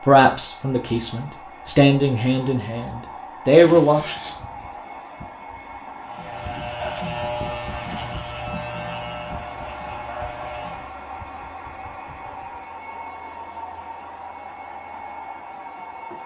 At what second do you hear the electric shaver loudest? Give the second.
7 s.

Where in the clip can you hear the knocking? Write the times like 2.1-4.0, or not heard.
not heard.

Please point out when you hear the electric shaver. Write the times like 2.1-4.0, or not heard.
6.0-10.9.